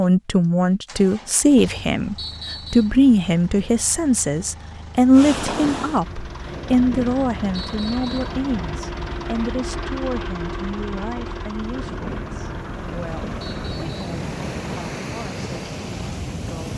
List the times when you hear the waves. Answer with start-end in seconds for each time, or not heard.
5.1-16.7.